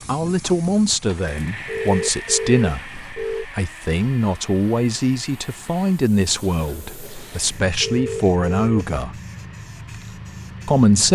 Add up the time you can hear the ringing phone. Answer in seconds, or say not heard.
3 s.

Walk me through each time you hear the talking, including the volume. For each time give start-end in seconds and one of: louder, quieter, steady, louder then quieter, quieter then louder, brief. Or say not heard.
0.1-9.1 steady
10.7-11.1 brief.